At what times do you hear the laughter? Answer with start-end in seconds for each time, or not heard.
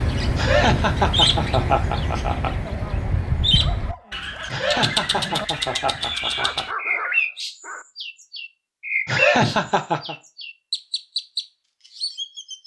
0.3-2.5, 4.5-6.7, 9.1-10.2.